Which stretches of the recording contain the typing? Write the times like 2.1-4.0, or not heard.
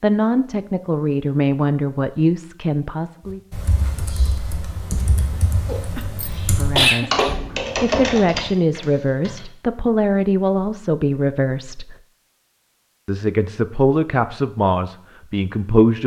3.3-9.4.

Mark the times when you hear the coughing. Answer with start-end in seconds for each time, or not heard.
5.7-7.3.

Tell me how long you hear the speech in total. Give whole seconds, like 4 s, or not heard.
12 s.